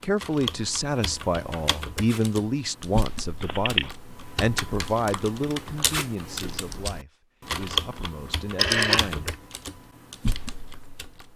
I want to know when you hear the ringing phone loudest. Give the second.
9 s.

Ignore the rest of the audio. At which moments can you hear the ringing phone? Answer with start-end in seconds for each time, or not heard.
3.4-3.9, 8.6-9.1.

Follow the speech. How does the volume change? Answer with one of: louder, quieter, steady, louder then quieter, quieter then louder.
quieter.